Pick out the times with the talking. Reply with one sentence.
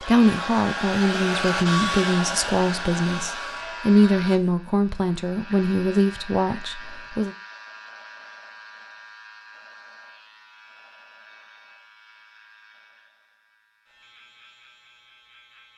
The talking can be heard from 0.0 to 7.3 s.